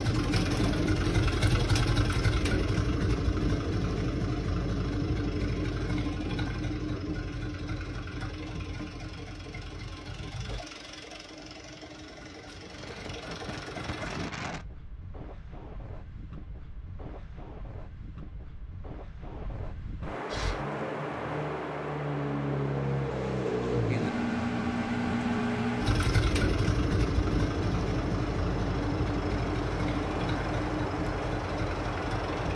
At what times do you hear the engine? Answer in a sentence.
You can hear the engine from 0.0 to 14.3 s and from 20.3 to 32.5 s.